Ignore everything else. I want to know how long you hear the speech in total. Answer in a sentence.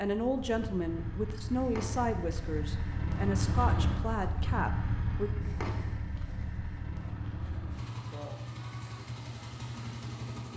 You can hear the speech for 5 seconds altogether.